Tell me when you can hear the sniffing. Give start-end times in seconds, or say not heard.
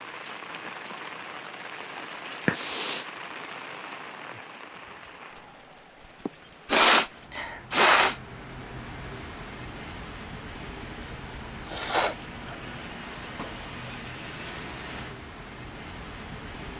2.5-3.0, 6.2-8.2, 11.7-12.2.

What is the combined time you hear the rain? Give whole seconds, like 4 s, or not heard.
17 s.